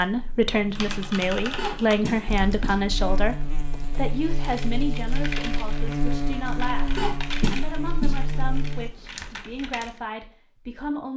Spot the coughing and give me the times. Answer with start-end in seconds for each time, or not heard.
1.6-3.0, 7.0-8.3.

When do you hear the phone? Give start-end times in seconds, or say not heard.
not heard.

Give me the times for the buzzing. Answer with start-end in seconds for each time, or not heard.
0.0-8.9.